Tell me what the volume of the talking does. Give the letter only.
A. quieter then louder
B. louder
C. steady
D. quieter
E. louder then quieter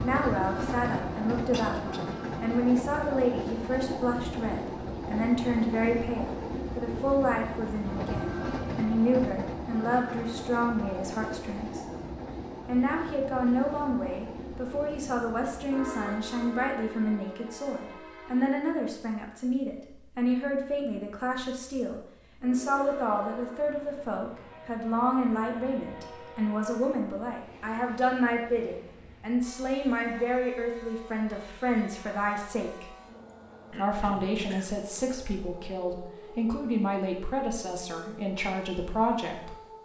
C.